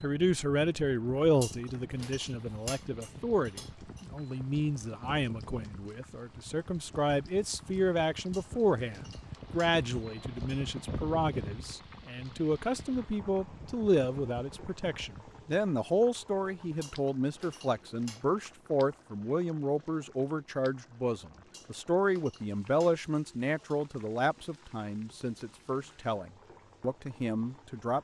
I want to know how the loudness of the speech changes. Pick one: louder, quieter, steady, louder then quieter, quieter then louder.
steady.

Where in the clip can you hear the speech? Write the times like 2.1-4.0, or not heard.
0.0-27.9.